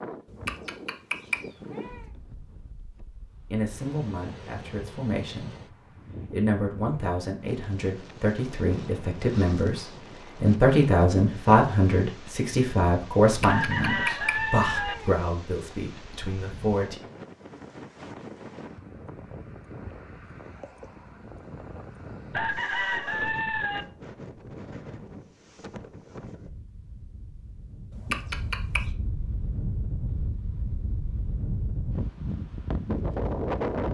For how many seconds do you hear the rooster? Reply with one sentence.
The rooster can be heard for 3 seconds in total.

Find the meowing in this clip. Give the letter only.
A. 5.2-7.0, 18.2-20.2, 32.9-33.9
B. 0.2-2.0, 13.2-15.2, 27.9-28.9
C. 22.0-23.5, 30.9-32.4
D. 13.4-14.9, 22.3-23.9
B.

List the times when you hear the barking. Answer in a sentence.
You can't hear the barking here.